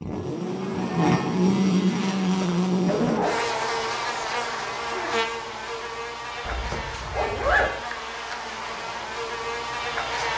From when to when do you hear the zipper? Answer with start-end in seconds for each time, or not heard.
2.2-3.4, 6.5-7.7.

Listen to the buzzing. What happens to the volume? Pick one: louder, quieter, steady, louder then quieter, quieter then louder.
quieter.